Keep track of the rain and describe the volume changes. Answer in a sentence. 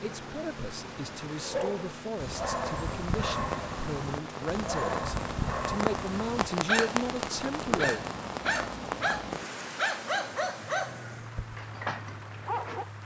The volume of the rain goes up, then down.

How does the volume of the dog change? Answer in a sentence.
The loudness of the dog stays about the same.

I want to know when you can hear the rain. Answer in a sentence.
You can hear the rain from 0.0 to 13.0 s.